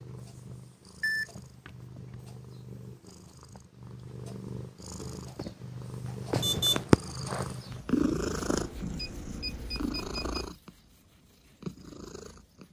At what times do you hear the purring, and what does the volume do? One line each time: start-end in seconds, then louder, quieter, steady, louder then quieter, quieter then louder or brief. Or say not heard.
0.0-12.6 louder then quieter.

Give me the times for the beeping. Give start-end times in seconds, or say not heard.
1.0-2.2, 6.4-6.8, 8.5-10.6.